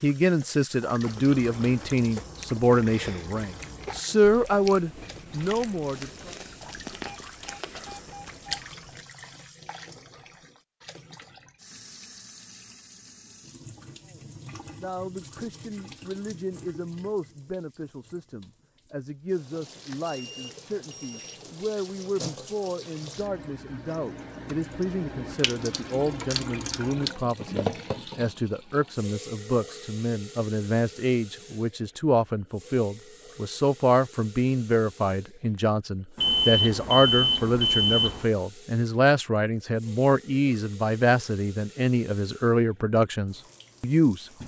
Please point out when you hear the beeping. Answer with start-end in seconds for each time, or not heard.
7.0-8.6, 19.6-21.5, 36.1-38.2.